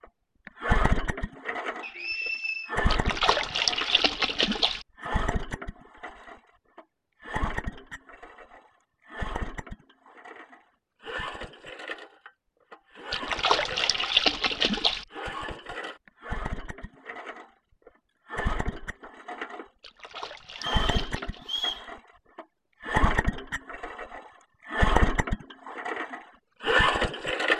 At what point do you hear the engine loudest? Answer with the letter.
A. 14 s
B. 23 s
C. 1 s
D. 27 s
D.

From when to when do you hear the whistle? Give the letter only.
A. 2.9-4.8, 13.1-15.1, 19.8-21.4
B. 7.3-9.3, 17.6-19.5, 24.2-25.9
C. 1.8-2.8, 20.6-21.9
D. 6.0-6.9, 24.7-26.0
C.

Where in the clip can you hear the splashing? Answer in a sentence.
The splashing can be heard from 2.9 to 4.8 s, from 13.1 to 15.1 s and from 19.8 to 21.4 s.